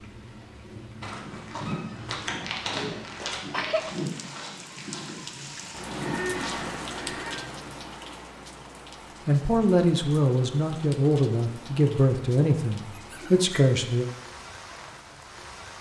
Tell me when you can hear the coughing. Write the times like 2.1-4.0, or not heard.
2.7-3.9.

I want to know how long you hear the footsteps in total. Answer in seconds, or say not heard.
6 s.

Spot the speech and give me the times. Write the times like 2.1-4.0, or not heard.
9.2-14.1.